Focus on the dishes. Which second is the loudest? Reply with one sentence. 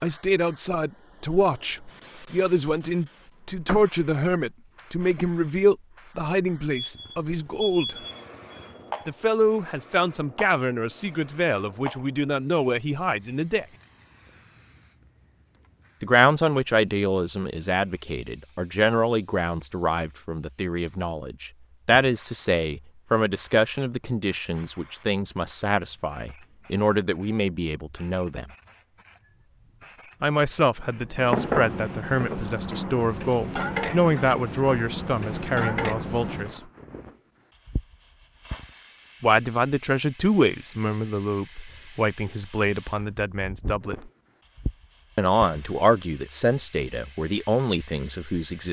The loudest moment of the dishes is at 31 seconds.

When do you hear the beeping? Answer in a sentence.
The beeping can be heard from 6.8 to 9.2 s.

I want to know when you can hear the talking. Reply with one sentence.
You can hear the talking from 0.0 to 8.0 s, from 9.1 to 13.7 s, from 16.0 to 28.5 s, from 30.2 to 36.6 s, from 39.2 to 44.1 s and from 45.1 to 48.6 s.